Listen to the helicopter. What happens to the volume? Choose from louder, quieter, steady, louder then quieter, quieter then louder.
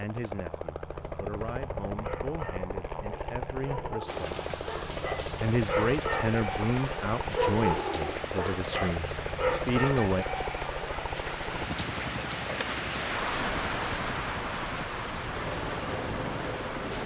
steady.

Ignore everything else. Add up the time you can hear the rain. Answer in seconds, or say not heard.
13 s.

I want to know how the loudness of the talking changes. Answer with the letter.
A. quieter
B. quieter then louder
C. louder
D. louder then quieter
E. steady
C.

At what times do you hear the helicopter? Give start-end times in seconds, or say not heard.
0.0-17.0.